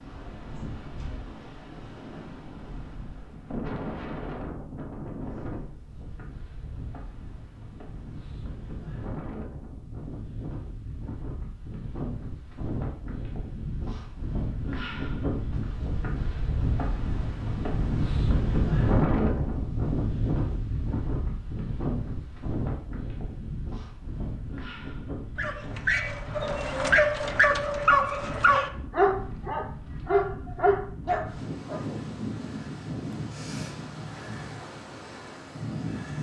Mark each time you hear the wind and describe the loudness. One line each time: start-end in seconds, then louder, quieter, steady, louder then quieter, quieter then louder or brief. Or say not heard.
0.0-36.1 louder then quieter.